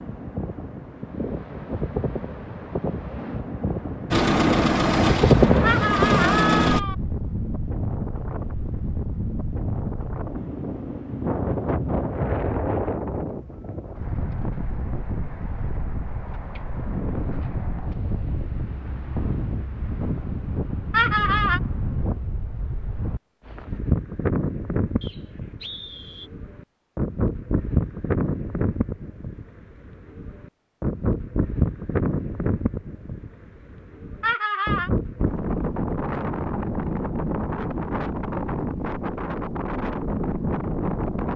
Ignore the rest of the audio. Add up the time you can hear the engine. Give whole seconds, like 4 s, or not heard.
3 s.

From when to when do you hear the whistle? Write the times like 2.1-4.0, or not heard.
25.0-26.3.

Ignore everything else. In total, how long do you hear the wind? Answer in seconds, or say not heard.
41 s.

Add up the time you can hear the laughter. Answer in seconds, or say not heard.
3 s.